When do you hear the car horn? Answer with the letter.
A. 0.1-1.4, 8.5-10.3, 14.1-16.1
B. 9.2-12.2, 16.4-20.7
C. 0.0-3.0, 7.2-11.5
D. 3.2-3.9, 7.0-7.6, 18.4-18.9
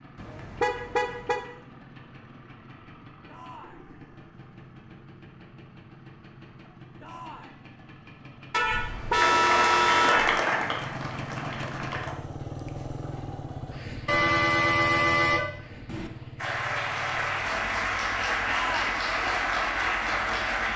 A.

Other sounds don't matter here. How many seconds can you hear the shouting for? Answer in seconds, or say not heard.
2 s.